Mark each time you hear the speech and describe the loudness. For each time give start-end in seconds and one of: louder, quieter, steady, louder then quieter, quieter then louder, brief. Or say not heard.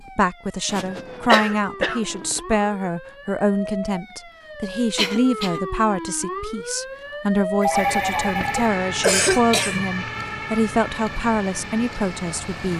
0.0-12.7 steady.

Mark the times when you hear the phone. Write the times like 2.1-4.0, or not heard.
7.6-8.7.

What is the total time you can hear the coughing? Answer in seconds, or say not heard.
3 s.